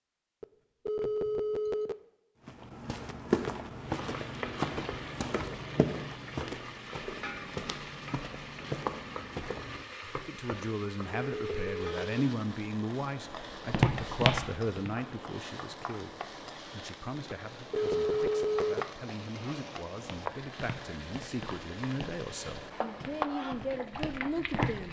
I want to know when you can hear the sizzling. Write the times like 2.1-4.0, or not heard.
3.8-24.8.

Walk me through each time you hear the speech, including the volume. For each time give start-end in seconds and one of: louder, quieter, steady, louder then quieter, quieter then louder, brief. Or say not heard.
10.2-24.8 quieter then louder.